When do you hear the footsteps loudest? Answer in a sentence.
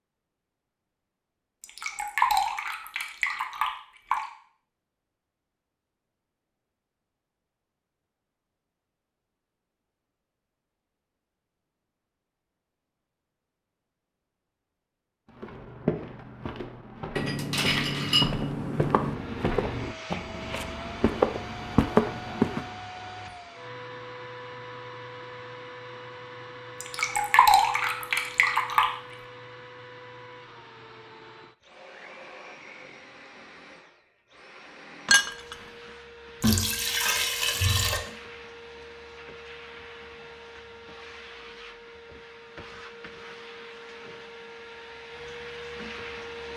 The volume of the footsteps peaks at 22 seconds.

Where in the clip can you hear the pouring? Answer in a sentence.
You can hear the pouring from 1.6 to 4.2 s, from 26.8 to 28.9 s and from 36.4 to 38.0 s.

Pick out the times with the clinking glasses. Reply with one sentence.
You can hear the clinking glasses from 17.1 to 19.1 s and from 35.0 to 35.5 s.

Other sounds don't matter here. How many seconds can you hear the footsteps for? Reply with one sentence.
You can hear the footsteps for 7 seconds altogether.